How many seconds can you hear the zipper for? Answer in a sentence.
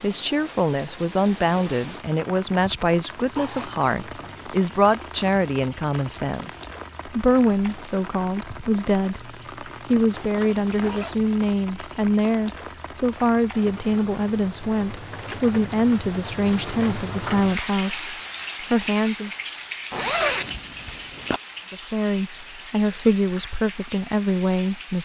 You can hear the zipper for 4 seconds altogether.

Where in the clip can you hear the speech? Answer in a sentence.
You can hear the speech from 0.0 to 19.3 s and from 21.7 to 25.0 s.